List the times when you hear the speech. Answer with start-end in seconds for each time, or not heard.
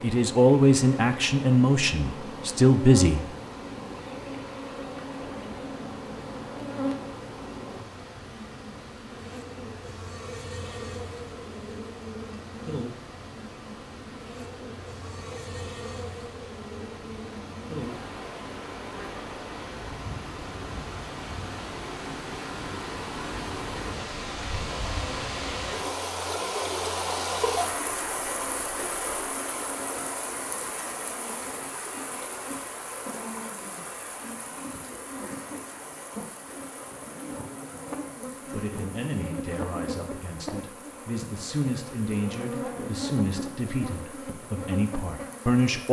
0.0-3.2, 38.5-45.8.